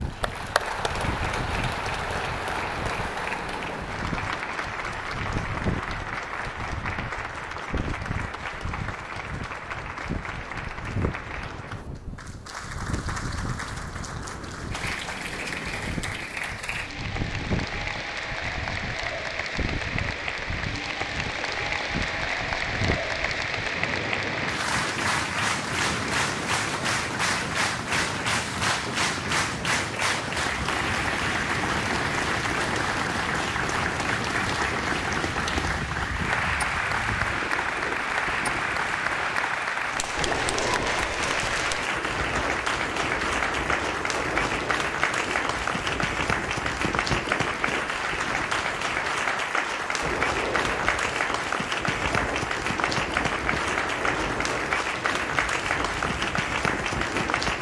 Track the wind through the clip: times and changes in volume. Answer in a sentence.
You can hear the wind from 0.0 to 57.5 s, at a steady volume.